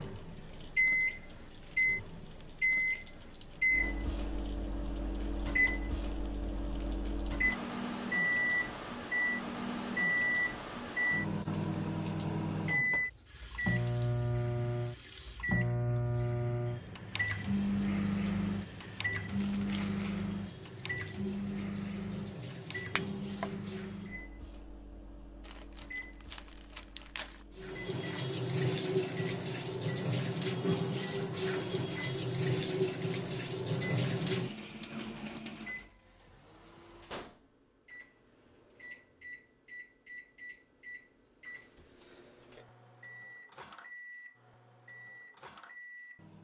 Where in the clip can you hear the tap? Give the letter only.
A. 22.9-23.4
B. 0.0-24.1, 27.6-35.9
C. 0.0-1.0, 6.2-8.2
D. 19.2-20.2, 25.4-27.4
B.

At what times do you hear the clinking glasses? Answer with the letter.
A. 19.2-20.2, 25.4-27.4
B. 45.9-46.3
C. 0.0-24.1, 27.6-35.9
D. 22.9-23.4
D.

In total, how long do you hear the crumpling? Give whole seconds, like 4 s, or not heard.
3 s.